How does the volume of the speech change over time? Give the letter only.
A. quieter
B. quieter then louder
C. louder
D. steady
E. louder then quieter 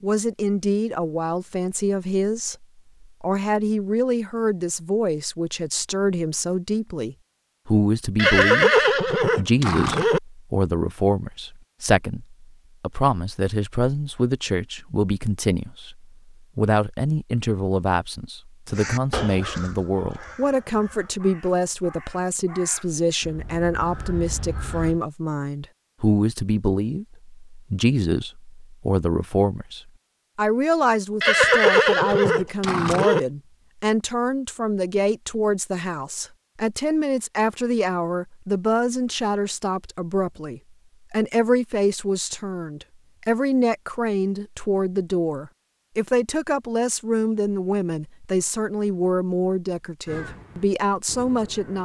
D.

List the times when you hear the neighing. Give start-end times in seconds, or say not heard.
8.2-10.2, 31.2-33.2.